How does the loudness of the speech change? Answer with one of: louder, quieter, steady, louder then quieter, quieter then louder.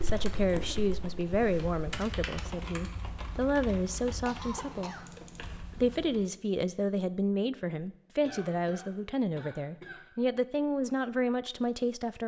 steady.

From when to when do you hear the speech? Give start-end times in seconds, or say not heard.
0.0-5.0, 5.8-12.2.